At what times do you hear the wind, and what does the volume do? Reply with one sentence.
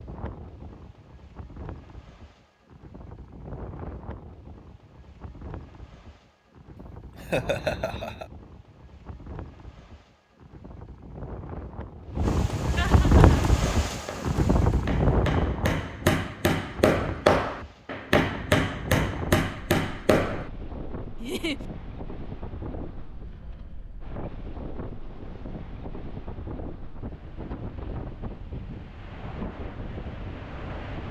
The wind can be heard from 0.0 to 31.0 s, getting louder then quieter.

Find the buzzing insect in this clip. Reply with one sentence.
You can't hear the buzzing insect here.